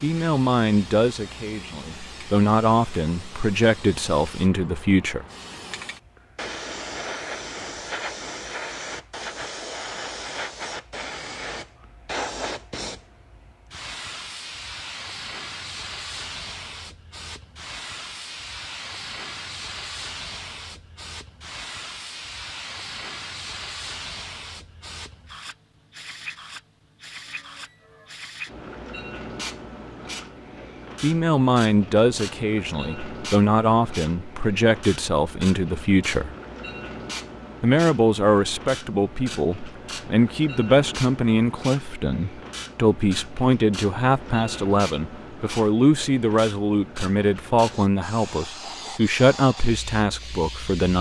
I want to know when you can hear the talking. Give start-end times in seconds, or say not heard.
0.0-5.2, 31.0-36.4, 37.6-50.9.